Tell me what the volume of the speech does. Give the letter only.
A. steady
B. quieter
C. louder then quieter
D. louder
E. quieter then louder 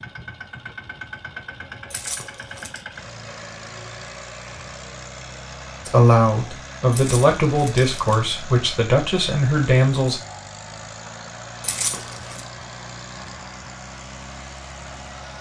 A.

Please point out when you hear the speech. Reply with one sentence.
You can hear the speech from 5.8 to 10.2 s.